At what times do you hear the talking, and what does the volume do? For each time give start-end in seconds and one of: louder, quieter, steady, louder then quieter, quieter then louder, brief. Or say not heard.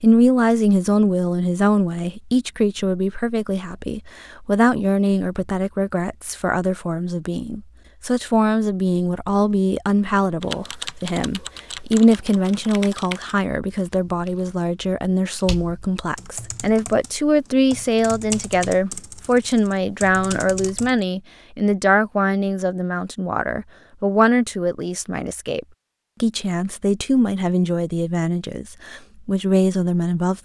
0.0-30.4 steady.